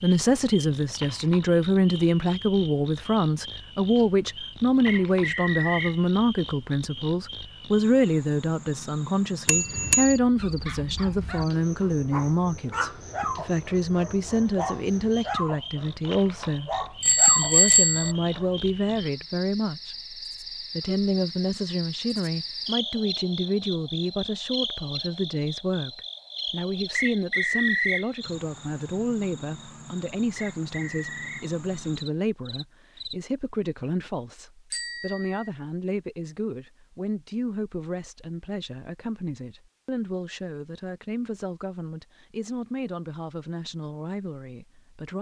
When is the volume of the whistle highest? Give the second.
28 s.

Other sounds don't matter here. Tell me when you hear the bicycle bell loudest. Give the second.
18 s.